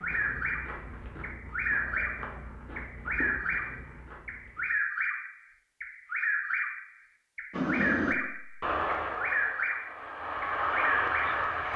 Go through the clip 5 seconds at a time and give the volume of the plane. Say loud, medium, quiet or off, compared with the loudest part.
off, loud, loud.